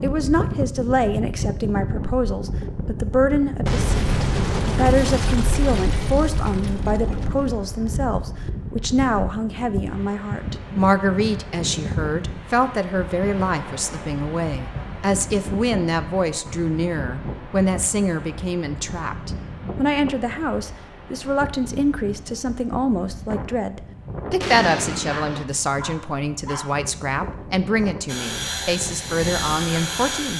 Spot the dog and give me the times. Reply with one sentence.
You can hear the dog from 25.1 to 26.8 s.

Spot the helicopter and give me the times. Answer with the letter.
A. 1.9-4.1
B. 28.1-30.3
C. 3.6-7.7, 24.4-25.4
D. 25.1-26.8
B.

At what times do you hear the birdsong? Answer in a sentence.
The birdsong can't be heard in this clip.